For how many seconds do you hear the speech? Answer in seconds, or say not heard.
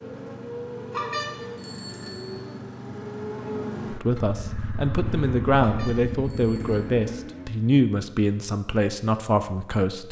6 s.